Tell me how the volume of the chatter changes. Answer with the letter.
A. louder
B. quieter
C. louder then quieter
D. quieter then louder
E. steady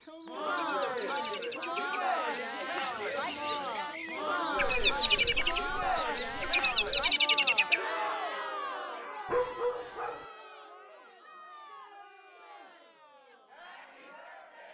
B.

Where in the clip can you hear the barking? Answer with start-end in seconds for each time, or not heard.
9.2-10.2.